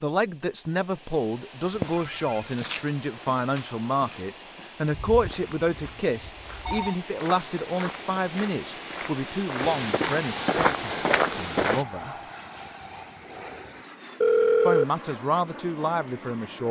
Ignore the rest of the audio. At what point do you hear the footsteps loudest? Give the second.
11 s.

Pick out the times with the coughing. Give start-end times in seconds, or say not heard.
not heard.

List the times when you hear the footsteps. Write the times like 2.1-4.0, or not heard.
1.6-11.8.